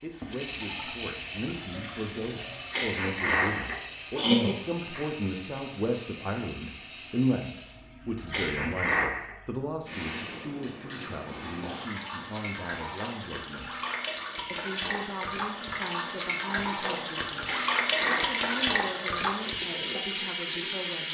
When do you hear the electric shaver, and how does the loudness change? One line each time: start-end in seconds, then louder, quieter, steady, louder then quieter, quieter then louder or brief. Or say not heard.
not heard.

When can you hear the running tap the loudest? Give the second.
18 s.